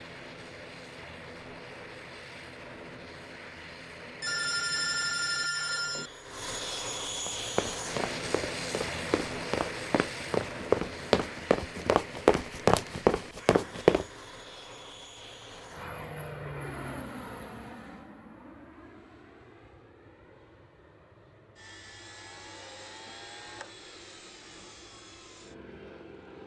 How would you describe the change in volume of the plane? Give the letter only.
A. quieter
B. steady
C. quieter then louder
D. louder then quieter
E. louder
D.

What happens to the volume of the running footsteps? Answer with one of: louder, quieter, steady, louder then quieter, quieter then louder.
louder.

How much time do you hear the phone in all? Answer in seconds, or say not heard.
2 s.